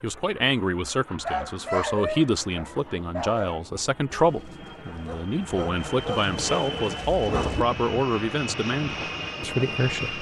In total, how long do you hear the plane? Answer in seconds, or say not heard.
10 s.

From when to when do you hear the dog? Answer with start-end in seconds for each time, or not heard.
1.2-7.7.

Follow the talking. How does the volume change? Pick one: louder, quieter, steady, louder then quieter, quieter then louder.
steady.